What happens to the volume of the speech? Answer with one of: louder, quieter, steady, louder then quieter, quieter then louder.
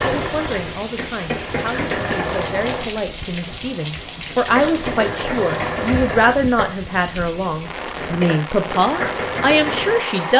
louder.